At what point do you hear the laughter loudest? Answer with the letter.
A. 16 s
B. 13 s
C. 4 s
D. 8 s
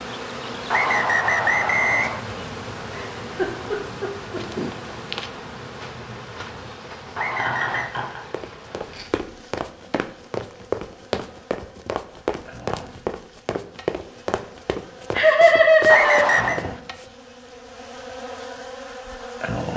A.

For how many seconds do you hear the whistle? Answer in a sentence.
The whistle can be heard for 3 seconds in total.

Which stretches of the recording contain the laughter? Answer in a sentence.
You can hear the laughter from 2.9 to 4.4 s, from 7.3 to 8.2 s and from 15.2 to 16.4 s.